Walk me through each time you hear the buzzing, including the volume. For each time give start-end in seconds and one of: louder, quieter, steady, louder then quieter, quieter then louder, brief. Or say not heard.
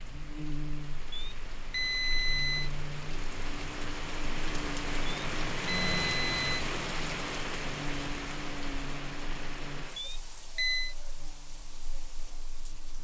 0.0-13.0 quieter.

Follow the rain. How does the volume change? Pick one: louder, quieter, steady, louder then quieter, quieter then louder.
louder then quieter.